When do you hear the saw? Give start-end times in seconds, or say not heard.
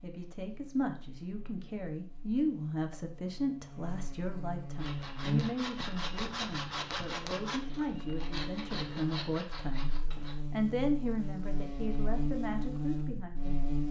4.8-10.3.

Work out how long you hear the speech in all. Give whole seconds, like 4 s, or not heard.
13 s.